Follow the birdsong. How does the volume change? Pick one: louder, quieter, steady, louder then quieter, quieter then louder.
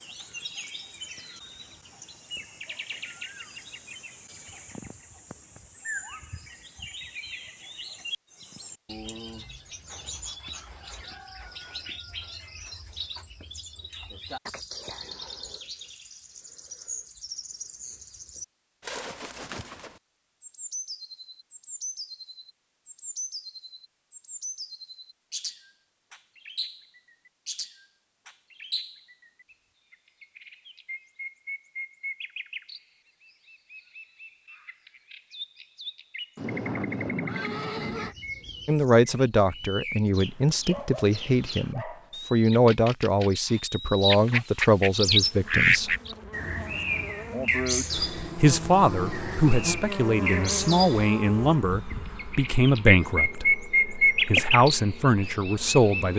louder.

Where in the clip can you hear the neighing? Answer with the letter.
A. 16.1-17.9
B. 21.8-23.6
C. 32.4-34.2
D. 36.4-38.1
D.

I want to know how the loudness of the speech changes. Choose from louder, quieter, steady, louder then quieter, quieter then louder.
steady.